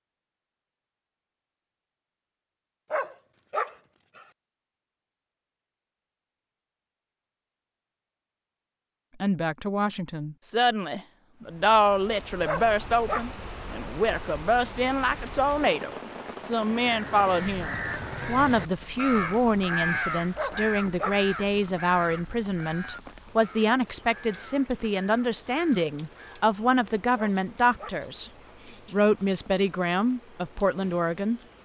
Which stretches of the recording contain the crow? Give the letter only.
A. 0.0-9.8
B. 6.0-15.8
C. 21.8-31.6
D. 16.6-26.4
D.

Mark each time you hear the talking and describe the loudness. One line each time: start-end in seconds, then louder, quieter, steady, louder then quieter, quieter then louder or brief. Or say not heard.
9.2-28.3 steady
28.9-31.4 brief.